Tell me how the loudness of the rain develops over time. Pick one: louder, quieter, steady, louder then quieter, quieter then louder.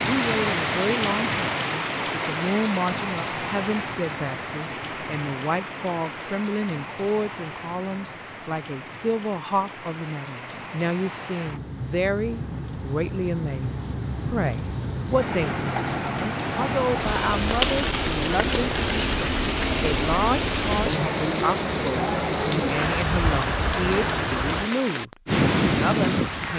quieter then louder.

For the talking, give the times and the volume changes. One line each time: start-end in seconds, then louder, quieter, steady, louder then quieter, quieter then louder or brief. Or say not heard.
0.0-26.5 steady.